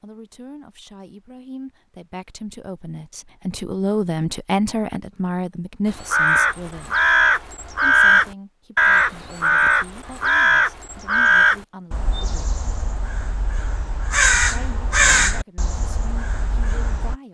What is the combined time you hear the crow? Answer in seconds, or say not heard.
11 s.